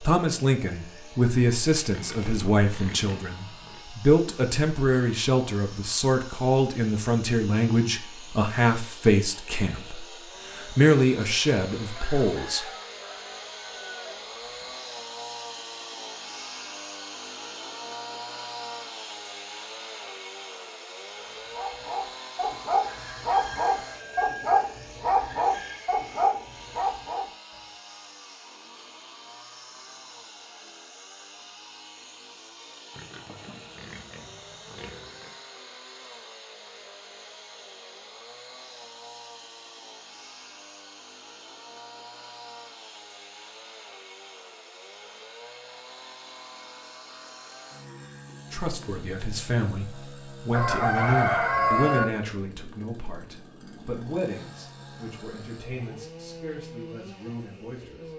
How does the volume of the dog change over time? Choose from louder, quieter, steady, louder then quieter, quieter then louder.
steady.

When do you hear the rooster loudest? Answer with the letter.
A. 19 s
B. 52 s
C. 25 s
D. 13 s
B.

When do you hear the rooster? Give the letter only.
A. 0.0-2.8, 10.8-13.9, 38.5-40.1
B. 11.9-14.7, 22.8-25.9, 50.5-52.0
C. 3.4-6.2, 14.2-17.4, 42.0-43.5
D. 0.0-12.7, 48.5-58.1
B.